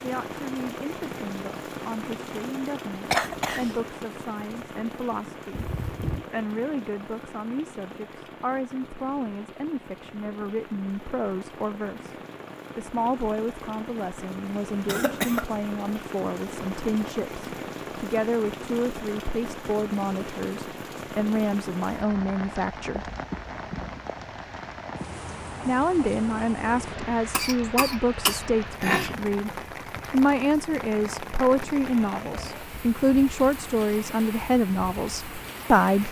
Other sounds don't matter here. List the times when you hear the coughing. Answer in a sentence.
The coughing can be heard from 3.1 to 3.8 s, from 14.8 to 15.4 s and from 27.3 to 29.1 s.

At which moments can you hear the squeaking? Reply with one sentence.
You can hear the squeaking from 5.5 to 6.2 s.